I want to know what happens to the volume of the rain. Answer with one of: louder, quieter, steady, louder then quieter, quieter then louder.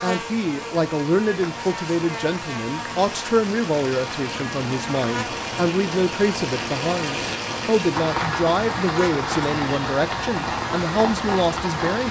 louder.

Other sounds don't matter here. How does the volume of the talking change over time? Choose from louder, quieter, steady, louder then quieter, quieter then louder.
steady.